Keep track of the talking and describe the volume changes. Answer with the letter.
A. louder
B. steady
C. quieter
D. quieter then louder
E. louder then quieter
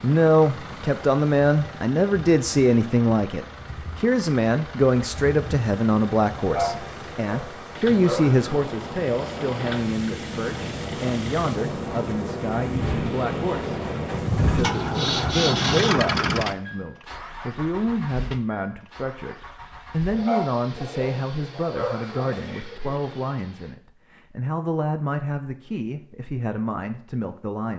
C.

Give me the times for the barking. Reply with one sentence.
The barking can be heard from 6.5 to 8.5 s and from 20.1 to 22.4 s.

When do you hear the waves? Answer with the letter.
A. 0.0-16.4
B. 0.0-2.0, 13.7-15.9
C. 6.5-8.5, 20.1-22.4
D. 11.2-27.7
A.